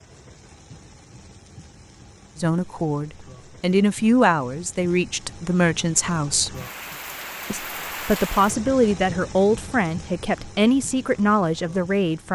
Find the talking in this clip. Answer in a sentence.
You can hear the talking from 2.4 to 6.5 s and from 7.5 to 12.3 s.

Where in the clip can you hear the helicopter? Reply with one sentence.
You can't hear the helicopter here.